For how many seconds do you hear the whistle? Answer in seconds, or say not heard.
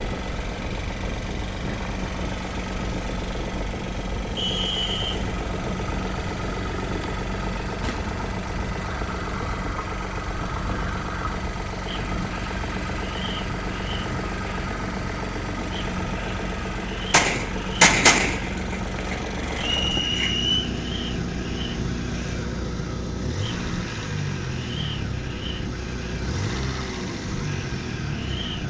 2 s.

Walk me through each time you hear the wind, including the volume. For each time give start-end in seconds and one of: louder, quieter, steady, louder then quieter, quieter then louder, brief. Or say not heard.
0.0-28.6 steady.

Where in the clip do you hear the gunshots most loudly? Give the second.
18 s.